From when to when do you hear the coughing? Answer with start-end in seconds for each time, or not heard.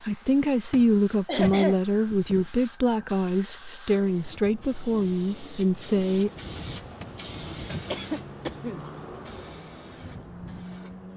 1.2-2.5, 7.9-8.8.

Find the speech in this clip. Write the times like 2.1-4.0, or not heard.
0.0-6.3.